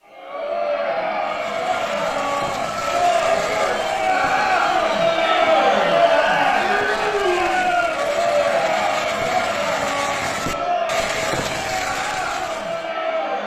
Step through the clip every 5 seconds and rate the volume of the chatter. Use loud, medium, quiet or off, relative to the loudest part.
loud, loud, medium.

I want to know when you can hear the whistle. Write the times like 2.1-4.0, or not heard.
not heard.